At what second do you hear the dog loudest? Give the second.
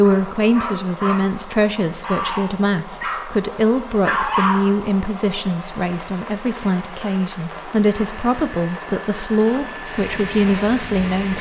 4 s.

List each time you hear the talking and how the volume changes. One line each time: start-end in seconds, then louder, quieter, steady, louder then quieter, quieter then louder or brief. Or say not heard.
0.0-11.3 steady.